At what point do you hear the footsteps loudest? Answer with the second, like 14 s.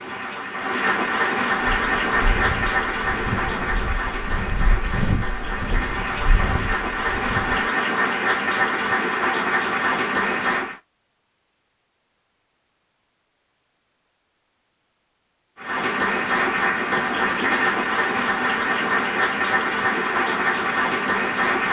5 s.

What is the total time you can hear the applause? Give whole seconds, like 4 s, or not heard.
17 s.